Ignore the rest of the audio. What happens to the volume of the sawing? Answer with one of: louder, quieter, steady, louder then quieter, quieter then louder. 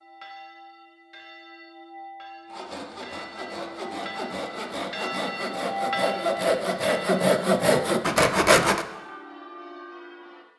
louder.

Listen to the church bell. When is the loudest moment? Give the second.
6 s.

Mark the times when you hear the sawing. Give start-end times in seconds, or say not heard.
2.5-8.8.